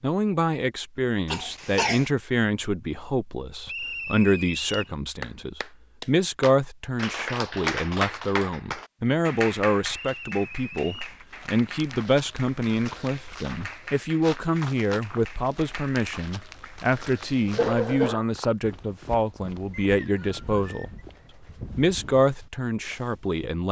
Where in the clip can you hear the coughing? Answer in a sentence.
The coughing can be heard from 1.2 to 2.0 s and from 17.2 to 18.2 s.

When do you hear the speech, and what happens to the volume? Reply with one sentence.
You can hear the speech from 0.0 to 20.9 s, at a steady volume; and briefly from 21.8 to 23.6 s.